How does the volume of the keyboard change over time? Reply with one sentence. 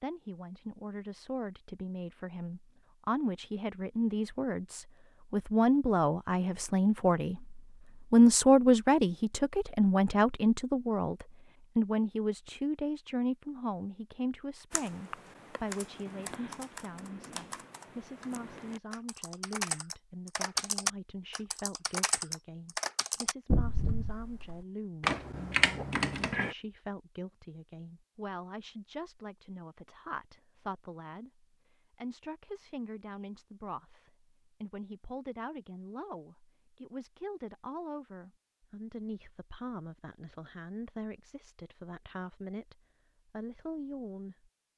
The volume of the keyboard goes up.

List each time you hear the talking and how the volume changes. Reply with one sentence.
You can hear the talking from 0.0 to 44.5 s, getting quieter.